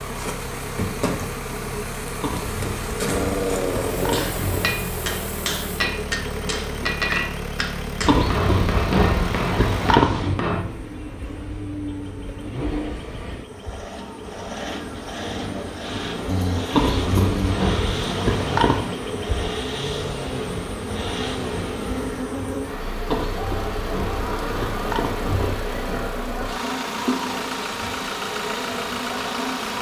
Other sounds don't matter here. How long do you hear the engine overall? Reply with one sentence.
You can hear the engine for 30 seconds altogether.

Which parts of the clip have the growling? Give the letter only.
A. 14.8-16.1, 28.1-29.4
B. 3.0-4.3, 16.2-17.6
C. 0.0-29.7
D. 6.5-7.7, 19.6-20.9
B.